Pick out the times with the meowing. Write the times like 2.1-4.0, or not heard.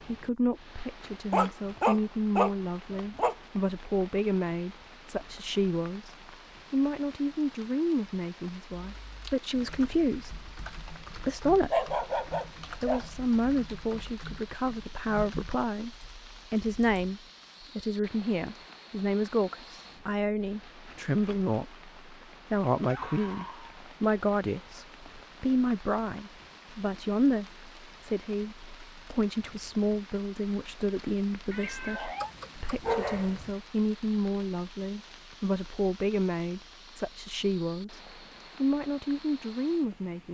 31.5-32.4.